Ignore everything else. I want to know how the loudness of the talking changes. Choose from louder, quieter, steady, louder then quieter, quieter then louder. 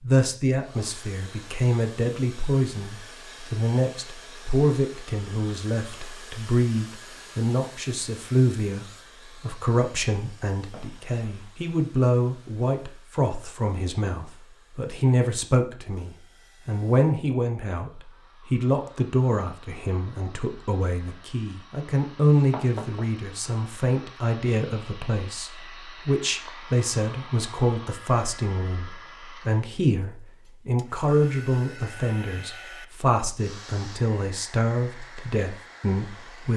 steady.